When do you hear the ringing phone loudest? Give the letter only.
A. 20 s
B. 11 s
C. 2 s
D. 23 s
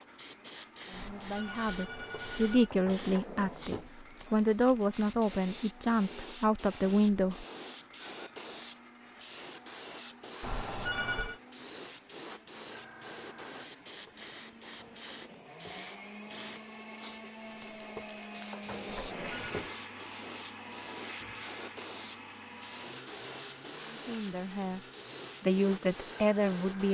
B.